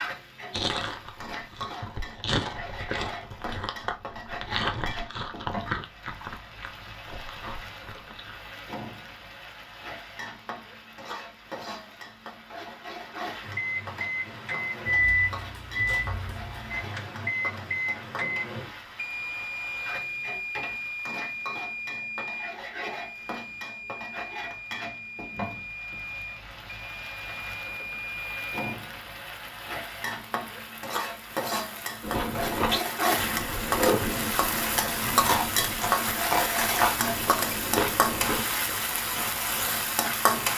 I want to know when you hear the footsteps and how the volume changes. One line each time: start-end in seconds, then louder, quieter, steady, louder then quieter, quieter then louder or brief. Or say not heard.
not heard.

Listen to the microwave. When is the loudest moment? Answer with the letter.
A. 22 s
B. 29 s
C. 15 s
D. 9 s
C.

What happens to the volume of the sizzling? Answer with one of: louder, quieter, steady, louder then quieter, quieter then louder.
louder.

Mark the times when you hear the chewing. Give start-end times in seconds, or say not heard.
0.5-8.4, 32.0-39.9.